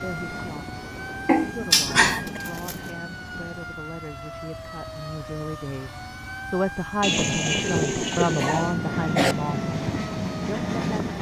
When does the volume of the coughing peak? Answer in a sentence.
The volume of the coughing peaks at 2 seconds.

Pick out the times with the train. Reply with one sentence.
The train can be heard from 0.0 to 3.8 s and from 7.3 to 11.1 s.